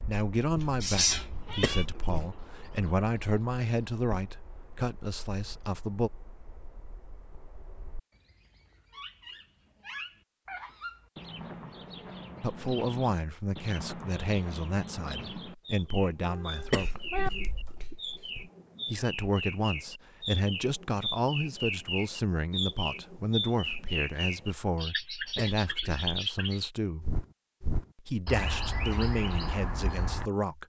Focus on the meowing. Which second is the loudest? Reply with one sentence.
The loudest moment of the meowing is at 1 second.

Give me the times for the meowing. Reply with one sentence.
You can hear the meowing from 0.6 to 1.9 s and from 16.2 to 17.3 s.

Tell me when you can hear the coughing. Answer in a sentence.
The coughing can be heard from 1.5 to 2.3 s, from 16.6 to 18.4 s and from 25.2 to 26.1 s.